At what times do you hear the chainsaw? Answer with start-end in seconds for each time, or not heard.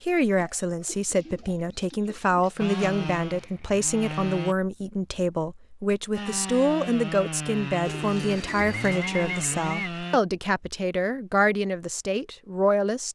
2.5-4.5, 6.2-10.2.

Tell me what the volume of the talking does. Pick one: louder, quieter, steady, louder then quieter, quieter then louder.
steady.